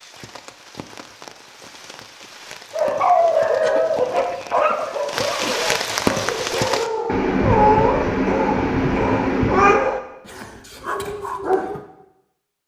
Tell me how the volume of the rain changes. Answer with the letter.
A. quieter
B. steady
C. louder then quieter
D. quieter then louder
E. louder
E.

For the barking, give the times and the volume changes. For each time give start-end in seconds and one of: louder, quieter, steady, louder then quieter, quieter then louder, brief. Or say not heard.
2.7-11.8 quieter.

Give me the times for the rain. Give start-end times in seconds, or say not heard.
0.0-6.9.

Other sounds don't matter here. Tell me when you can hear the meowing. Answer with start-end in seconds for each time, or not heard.
7.0-9.8.